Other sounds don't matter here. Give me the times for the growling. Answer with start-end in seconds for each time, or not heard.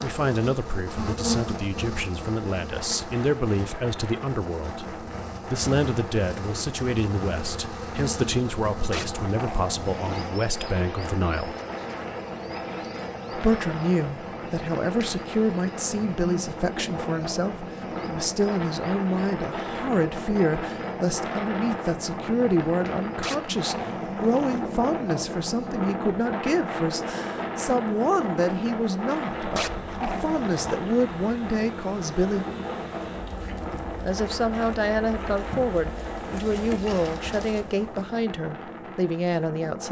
8.9-10.4, 23.2-24.6, 29.6-30.8.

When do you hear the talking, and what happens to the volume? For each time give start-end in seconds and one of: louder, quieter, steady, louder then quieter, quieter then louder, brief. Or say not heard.
0.0-11.6 steady
13.3-32.5 steady
34.0-39.8 steady.